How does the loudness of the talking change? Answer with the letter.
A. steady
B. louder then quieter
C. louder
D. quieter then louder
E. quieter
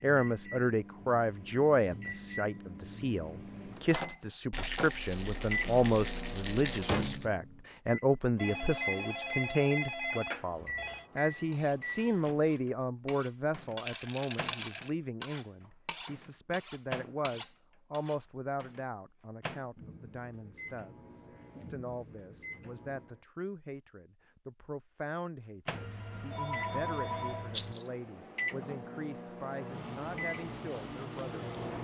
E.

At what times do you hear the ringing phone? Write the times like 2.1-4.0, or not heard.
8.3-11.1, 25.7-27.8.